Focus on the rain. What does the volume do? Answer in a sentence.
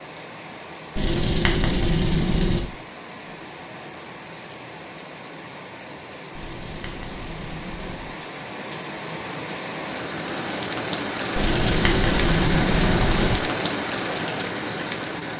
The loudness of the rain goes up.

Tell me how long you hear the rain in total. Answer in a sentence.
You can hear the rain for 15 seconds altogether.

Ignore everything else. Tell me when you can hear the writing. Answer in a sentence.
You can hear the writing from 0.9 to 2.6 s, from 6.3 to 8.2 s and from 11.3 to 13.3 s.